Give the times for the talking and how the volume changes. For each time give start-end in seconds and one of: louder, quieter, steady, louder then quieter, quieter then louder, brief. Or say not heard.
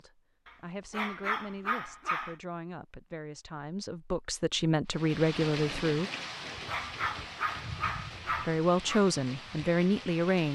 0.0-6.1 louder
8.4-10.5 brief.